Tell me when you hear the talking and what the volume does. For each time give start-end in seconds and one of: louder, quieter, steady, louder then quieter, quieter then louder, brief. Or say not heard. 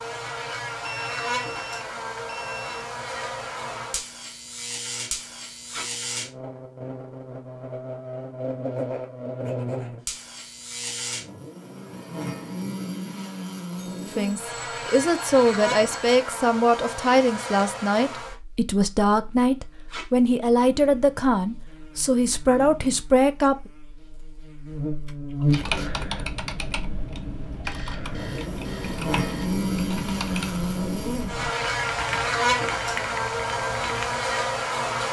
14.2-23.7 steady.